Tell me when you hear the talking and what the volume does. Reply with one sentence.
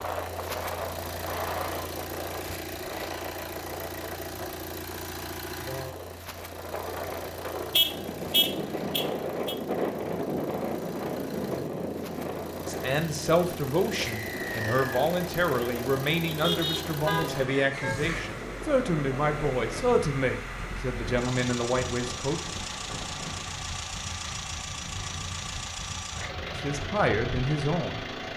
You can hear the talking from 12.7 to 22.4 s, at a steady volume; and briefly from 26.6 to 28.3 s.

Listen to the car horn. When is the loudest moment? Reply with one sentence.
The loudest moment of the car horn is at 8 seconds.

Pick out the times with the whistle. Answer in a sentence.
You can hear the whistle from 14.1 to 15.1 s.